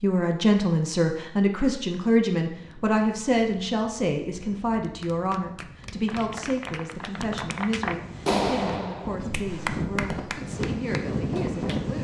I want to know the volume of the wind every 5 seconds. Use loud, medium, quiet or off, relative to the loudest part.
quiet, medium, loud.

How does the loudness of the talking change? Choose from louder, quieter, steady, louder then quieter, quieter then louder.
quieter.